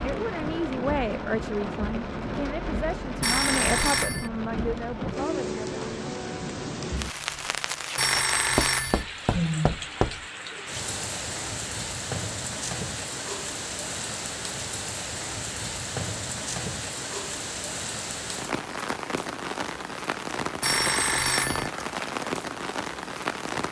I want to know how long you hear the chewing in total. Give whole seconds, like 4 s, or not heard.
not heard.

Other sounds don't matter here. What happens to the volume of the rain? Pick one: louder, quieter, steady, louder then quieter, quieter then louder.
steady.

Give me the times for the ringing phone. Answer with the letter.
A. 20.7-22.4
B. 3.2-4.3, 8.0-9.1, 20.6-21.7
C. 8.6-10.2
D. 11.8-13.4
B.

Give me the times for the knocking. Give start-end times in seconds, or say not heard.
8.6-10.2.